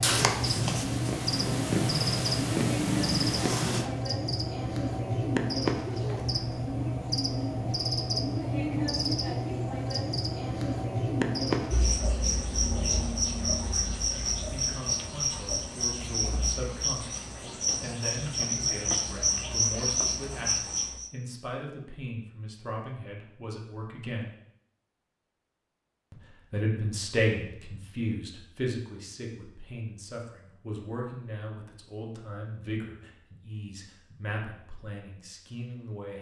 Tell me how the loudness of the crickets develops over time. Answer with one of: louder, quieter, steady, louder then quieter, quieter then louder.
steady.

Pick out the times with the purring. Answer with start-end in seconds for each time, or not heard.
0.0-3.9.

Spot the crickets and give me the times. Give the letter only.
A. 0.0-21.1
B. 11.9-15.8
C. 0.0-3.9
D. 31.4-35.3
A.